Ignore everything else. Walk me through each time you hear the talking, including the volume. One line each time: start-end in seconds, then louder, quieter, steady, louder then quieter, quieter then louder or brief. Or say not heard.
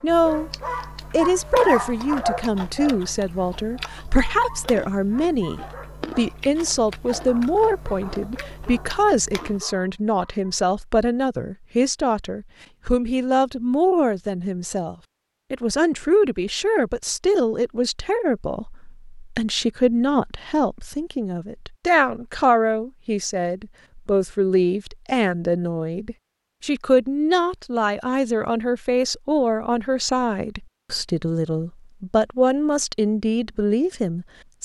0.0-0.5 brief
1.1-34.6 steady.